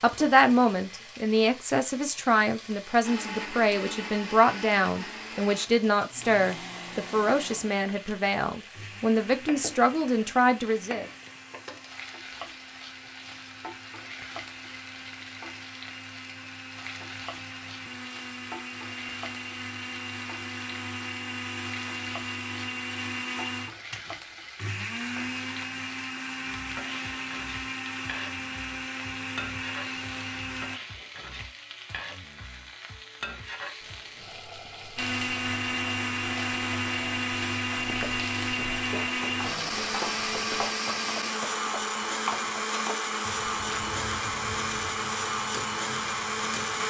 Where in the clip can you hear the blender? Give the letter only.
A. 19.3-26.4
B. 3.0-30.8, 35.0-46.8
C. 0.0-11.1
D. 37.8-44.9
B.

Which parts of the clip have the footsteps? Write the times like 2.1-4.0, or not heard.
37.8-44.9.